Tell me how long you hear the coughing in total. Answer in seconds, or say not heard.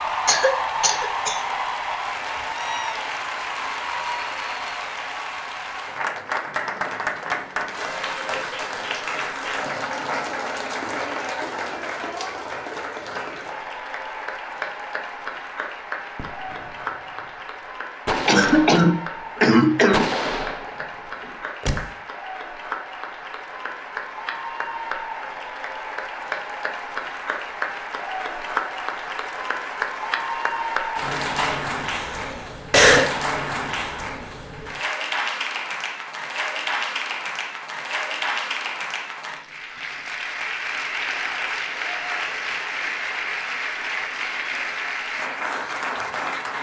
5 s.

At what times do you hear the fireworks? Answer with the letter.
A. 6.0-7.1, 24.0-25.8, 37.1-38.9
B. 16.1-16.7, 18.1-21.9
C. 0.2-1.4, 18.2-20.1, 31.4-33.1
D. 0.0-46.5
B.